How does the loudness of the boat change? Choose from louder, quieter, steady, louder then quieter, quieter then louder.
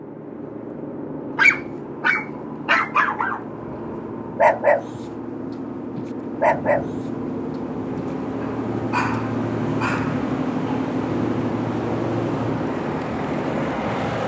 louder.